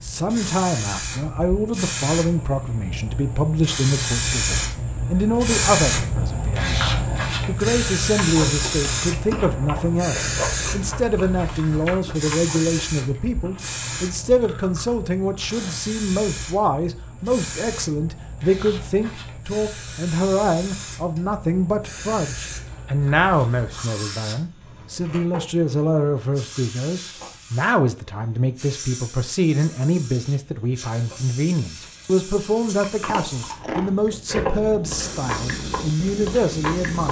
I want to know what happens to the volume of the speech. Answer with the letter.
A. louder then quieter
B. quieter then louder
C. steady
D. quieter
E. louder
C.